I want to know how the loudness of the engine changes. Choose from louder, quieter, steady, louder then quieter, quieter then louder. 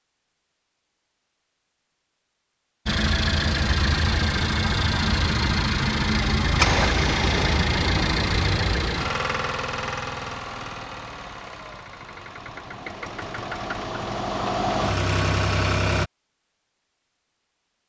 quieter then louder.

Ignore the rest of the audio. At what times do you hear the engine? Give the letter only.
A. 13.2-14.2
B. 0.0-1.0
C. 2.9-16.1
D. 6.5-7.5
C.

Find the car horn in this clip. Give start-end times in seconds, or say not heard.
6.5-7.5.